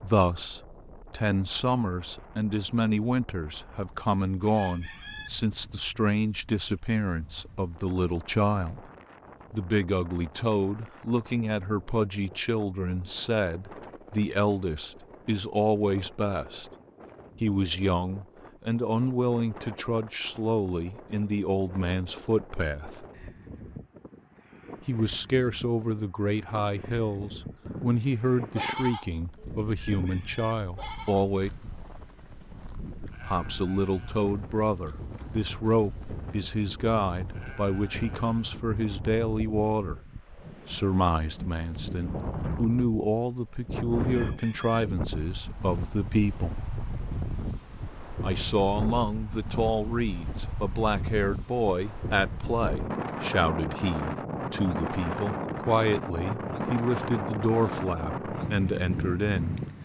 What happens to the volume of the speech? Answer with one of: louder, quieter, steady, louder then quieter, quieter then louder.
steady.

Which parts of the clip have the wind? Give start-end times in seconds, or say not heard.
0.0-59.7.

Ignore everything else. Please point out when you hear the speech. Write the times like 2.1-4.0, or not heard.
0.0-8.9, 9.5-16.7, 17.4-23.1, 24.9-31.5, 33.2-46.5, 48.2-59.5.